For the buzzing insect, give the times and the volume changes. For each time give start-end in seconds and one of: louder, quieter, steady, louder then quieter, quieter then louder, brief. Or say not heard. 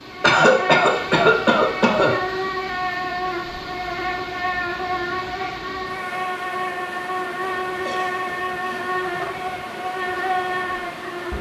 0.0-11.3 steady.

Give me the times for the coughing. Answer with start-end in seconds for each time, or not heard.
0.2-2.4, 7.8-9.3.